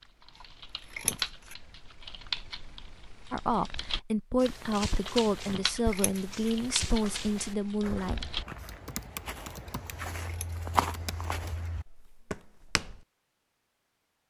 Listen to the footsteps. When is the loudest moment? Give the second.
11 s.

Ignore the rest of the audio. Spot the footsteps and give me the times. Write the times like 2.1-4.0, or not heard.
4.4-13.1.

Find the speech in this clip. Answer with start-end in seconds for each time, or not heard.
3.3-8.2.